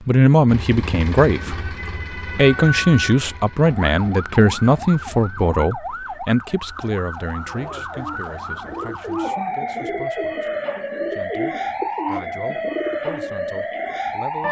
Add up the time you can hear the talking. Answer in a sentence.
You can hear the talking for 14 seconds altogether.